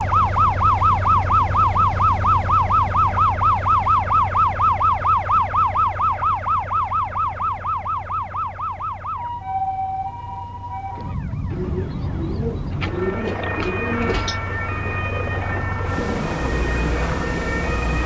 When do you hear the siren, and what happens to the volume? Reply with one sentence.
The siren can be heard from 0.0 to 18.0 s, getting quieter.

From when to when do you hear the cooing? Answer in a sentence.
You can hear the cooing from 11.5 to 14.4 s.